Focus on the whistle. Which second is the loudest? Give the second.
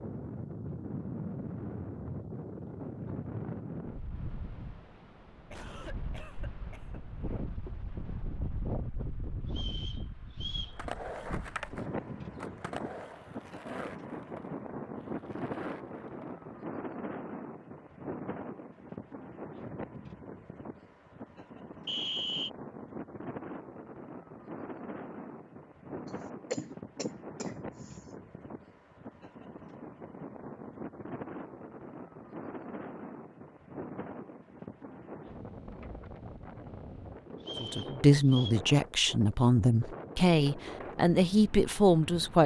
22 s.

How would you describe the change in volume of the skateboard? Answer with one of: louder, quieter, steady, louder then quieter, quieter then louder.
quieter.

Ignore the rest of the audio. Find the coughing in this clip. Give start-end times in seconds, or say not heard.
5.5-7.5, 26.5-27.9.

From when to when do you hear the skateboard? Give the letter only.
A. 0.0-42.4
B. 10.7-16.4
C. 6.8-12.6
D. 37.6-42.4
B.